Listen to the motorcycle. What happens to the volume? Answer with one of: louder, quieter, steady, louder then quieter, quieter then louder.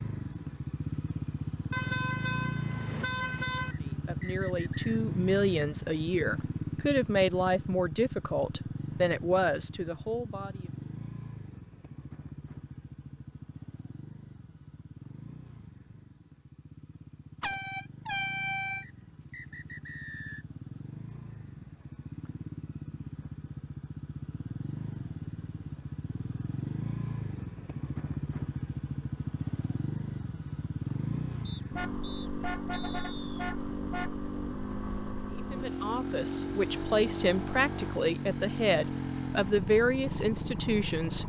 quieter then louder.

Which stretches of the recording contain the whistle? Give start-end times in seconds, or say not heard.
3.7-5.0, 18.8-20.4, 31.4-33.5.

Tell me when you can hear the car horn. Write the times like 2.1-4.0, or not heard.
1.7-3.8, 17.4-18.9, 31.8-34.1.